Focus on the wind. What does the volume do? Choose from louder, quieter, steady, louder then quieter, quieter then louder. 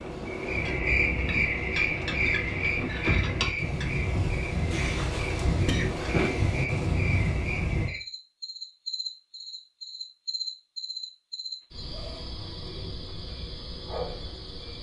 louder.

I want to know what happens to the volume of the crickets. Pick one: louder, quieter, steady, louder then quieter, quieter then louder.
quieter.